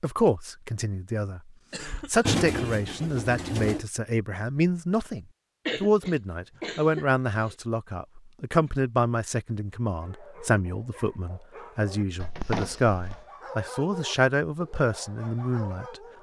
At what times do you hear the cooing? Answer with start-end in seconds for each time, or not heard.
2.2-3.9.